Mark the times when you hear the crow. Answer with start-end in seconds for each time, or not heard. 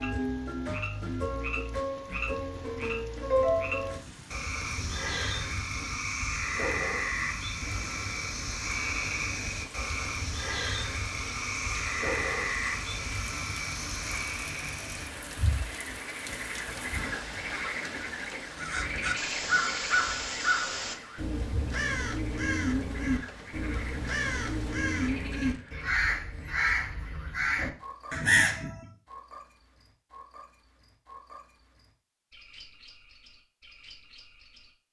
18.6-28.9.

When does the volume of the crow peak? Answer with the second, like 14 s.
28 s.